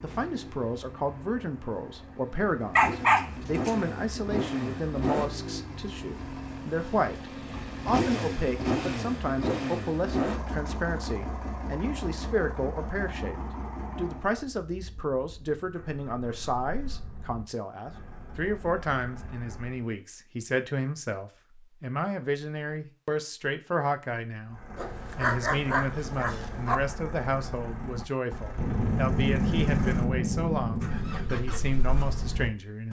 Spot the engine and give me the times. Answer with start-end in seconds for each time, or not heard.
0.0-19.9, 24.4-32.8.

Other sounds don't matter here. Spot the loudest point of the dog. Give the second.
3 s.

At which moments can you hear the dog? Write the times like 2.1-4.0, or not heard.
2.8-3.7, 24.8-26.8.